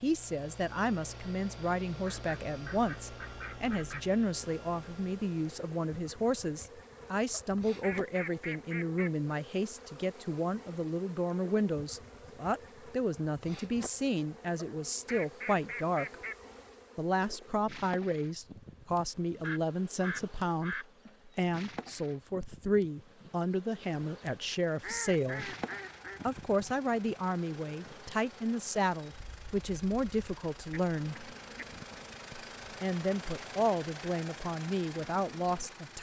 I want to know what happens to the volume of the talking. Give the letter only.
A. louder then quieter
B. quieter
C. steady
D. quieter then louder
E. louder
C.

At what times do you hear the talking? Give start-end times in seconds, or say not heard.
0.0-16.1, 16.9-25.6, 26.2-31.2, 32.3-35.9.